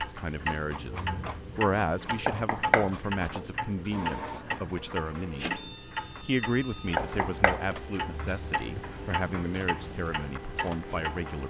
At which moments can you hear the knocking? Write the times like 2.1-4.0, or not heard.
2.2-3.4, 7.0-7.7.